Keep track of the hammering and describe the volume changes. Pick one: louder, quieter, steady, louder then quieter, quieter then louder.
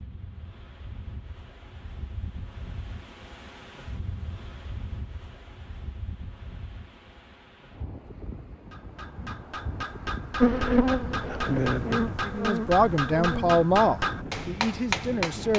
louder.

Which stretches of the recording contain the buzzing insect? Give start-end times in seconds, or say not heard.
10.4-13.6.